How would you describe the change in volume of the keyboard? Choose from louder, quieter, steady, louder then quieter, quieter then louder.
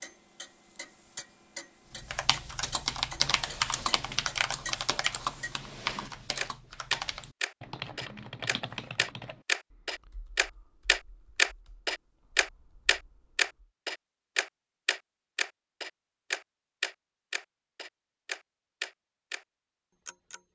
quieter.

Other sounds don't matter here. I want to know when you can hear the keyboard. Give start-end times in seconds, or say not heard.
1.9-13.4.